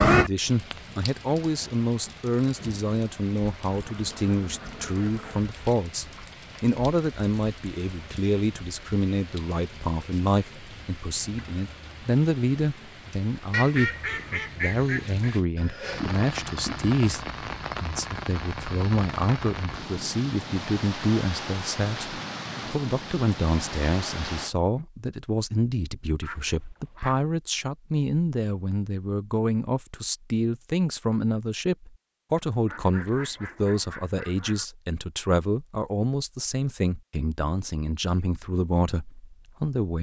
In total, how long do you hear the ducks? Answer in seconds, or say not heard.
7 s.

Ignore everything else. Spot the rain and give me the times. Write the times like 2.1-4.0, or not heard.
0.0-24.6.